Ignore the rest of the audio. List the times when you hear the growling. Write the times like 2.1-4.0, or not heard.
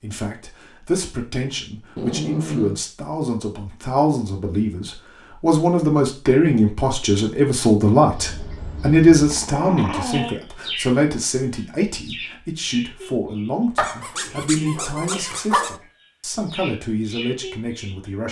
1.9-2.8, 9.3-10.3, 13.8-15.8.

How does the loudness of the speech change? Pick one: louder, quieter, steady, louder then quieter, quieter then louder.
louder then quieter.